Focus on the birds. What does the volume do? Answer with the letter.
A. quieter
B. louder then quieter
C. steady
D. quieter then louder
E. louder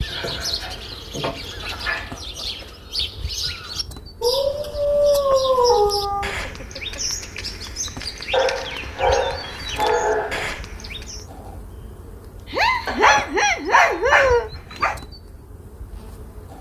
C.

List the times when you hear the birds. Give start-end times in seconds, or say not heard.
0.0-11.2.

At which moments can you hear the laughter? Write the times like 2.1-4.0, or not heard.
1.6-2.6, 6.5-7.0, 12.5-14.5.